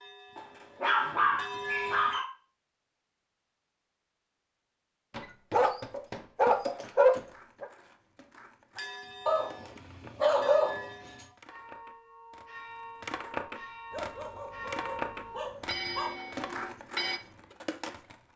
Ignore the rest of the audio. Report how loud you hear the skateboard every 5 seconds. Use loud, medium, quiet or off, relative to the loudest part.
off, quiet, loud, loud.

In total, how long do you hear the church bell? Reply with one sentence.
The church bell can be heard for 11 seconds in total.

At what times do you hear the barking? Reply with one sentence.
The barking can be heard from 0.3 to 2.3 s, from 5.1 to 7.7 s, from 9.2 to 11.2 s and from 13.9 to 16.1 s.